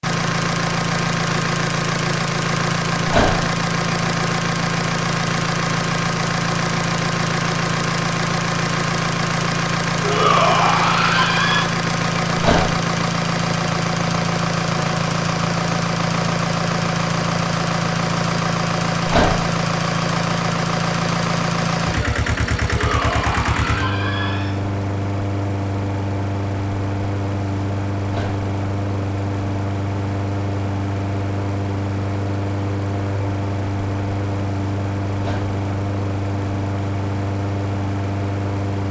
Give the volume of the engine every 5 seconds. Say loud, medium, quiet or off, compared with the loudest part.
loud, loud, loud, loud, loud, medium, medium, medium.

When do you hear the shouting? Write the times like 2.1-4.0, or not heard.
10.0-11.7, 22.6-24.6.